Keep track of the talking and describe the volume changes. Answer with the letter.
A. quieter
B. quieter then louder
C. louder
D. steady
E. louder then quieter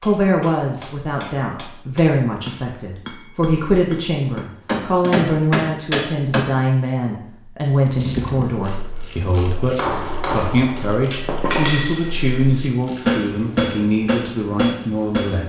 D.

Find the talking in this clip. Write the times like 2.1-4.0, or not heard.
0.0-15.4.